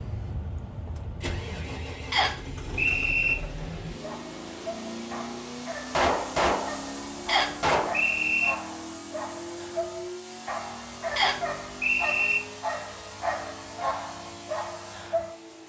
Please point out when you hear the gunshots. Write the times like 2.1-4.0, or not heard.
5.9-7.9.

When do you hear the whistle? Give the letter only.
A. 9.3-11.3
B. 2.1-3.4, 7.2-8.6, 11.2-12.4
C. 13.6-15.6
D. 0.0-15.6
B.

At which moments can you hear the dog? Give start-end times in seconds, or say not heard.
3.9-15.3.